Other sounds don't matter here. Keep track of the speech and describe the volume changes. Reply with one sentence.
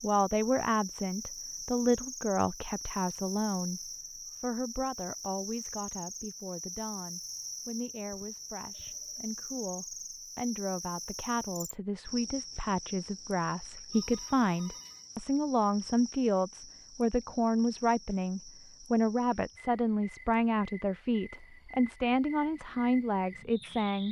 The loudness of the speech goes down, then up.